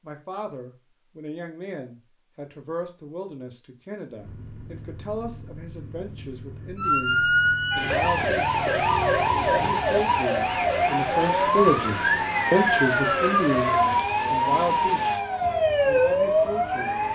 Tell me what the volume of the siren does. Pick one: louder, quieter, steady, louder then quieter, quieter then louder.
steady.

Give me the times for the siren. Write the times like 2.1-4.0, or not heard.
6.8-17.1.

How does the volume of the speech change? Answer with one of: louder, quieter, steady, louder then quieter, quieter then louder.
louder then quieter.